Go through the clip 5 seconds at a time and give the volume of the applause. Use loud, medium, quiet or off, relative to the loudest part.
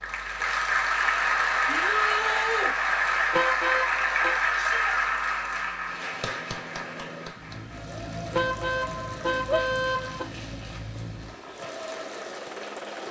loud, medium, quiet.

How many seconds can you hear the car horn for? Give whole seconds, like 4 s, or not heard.
3 s.